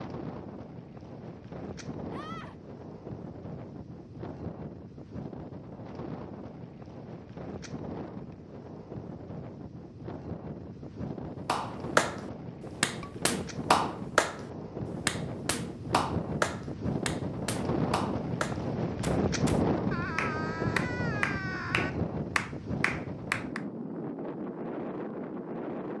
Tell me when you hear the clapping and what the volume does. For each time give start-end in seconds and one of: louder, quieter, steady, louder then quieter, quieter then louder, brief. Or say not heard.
11.4-23.6 quieter.